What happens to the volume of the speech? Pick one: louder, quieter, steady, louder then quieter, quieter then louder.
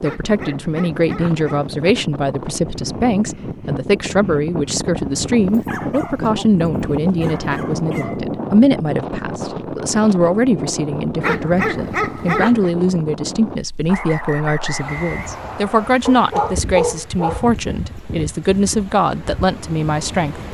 steady.